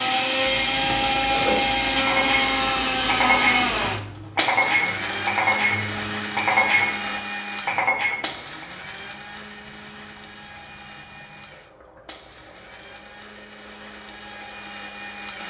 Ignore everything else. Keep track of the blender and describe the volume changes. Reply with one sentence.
The volume of the blender goes down.